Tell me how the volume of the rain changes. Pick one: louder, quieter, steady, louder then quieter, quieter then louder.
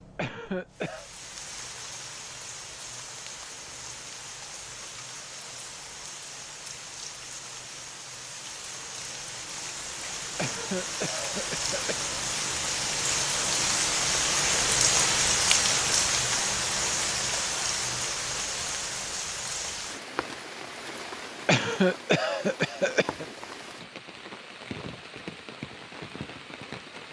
louder then quieter.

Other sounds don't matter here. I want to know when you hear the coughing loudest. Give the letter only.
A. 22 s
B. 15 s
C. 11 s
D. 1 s
A.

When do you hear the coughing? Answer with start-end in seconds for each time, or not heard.
0.1-1.1, 10.3-12.2, 21.4-23.2.